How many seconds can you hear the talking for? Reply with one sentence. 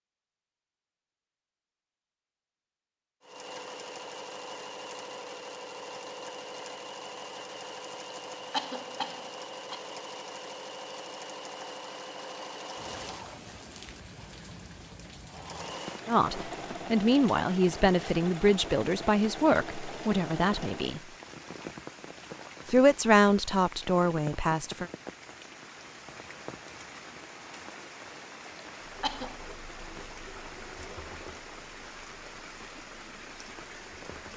You can hear the talking for 7 seconds altogether.